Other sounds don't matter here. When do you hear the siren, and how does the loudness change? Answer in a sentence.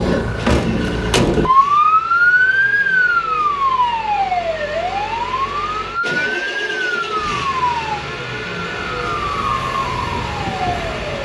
The siren can be heard from 0.0 to 11.2 s, getting quieter.